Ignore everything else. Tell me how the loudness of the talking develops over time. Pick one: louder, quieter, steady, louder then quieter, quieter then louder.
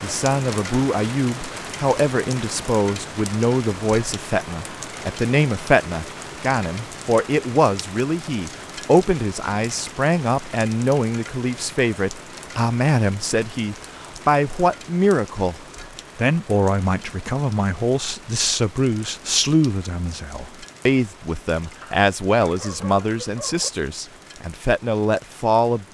steady.